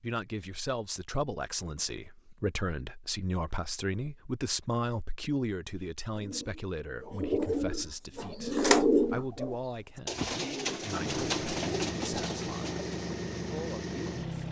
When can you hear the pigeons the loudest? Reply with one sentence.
The loudest moment of the pigeons is at 9 seconds.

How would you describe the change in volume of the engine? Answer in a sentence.
The volume of the engine stays about the same.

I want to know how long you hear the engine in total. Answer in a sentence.
You can hear the engine for 4 seconds altogether.